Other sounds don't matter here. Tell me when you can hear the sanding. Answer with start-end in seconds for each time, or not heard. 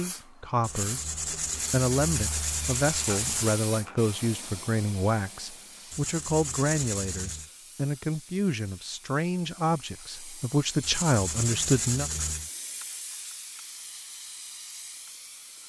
0.6-3.6, 5.9-7.5, 10.8-12.5.